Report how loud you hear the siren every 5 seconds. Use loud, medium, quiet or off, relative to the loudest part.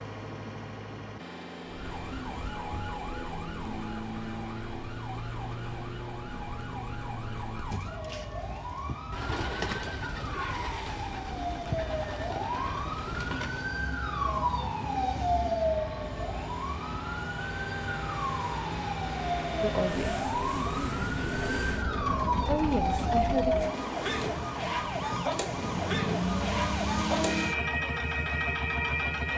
medium, medium, loud, loud, loud, loud.